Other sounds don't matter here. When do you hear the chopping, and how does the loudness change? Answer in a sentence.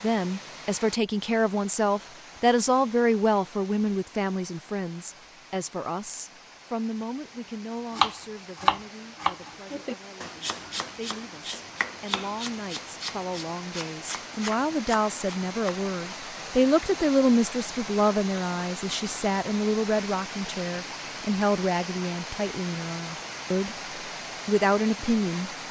The chopping can be heard from 8.0 to 16.2 s, getting quieter.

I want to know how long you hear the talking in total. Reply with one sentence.
You can hear the talking for 25 seconds altogether.